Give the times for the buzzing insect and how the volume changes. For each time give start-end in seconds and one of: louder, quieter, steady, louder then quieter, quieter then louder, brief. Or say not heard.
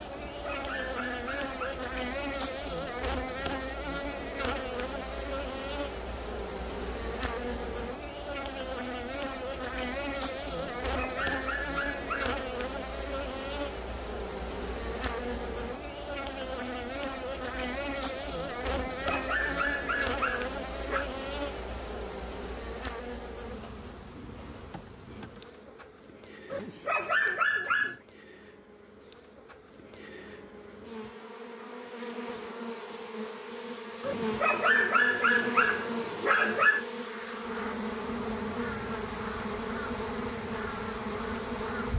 0.0-41.9 quieter then louder.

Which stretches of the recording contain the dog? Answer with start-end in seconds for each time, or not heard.
0.2-1.8, 10.8-12.3, 18.6-21.1, 26.5-28.0, 34.0-36.9.